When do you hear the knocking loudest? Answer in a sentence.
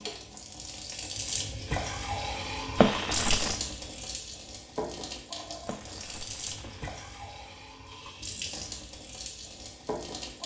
The loudest moment of the knocking is at 3 seconds.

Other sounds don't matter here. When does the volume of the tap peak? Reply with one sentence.
The volume of the tap peaks at 3 seconds.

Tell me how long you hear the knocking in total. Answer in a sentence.
You can hear the knocking for 2 seconds altogether.